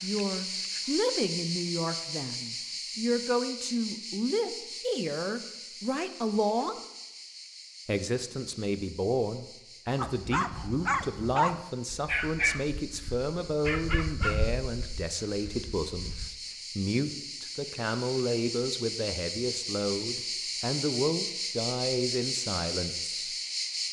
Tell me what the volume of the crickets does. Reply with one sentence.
The volume of the crickets goes down, then up.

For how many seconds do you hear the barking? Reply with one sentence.
You can hear the barking for 6 seconds altogether.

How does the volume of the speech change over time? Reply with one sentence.
The volume of the speech stays about the same.